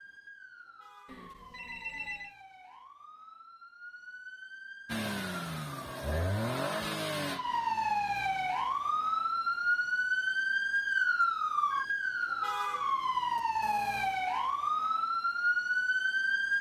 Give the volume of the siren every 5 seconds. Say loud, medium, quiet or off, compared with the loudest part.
quiet, loud, loud, loud.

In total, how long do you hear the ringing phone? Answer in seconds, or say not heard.
2 s.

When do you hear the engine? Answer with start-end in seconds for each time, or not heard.
4.8-10.3.